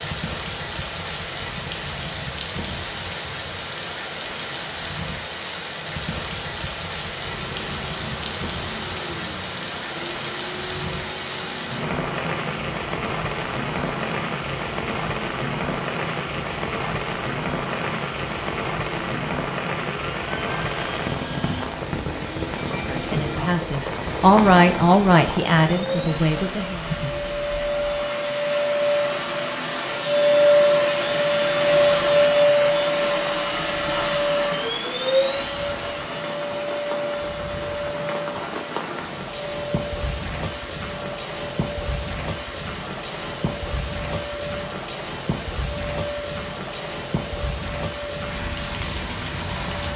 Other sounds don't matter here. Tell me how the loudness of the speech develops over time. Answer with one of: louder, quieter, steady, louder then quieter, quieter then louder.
louder then quieter.